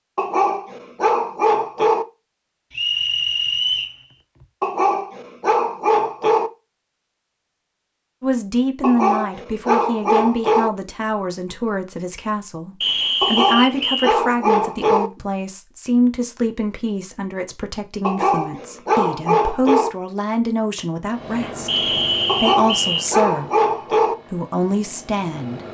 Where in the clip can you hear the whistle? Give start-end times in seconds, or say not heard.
2.7-4.0, 12.8-14.2, 21.6-23.1.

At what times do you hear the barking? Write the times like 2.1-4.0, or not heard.
0.1-2.0, 4.6-6.5, 8.8-10.7, 13.2-15.1, 18.0-19.9, 22.2-24.1.